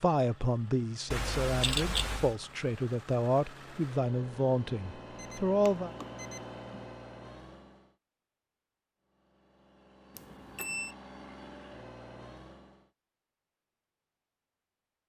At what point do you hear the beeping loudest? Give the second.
2 s.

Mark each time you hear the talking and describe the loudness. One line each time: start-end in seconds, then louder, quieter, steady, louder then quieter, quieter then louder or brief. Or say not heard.
0.0-5.9 steady.